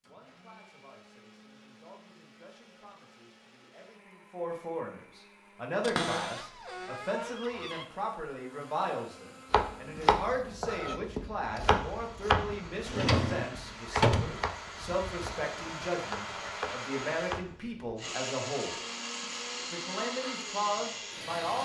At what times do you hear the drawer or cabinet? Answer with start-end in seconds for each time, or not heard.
5.8-7.8, 12.8-14.4.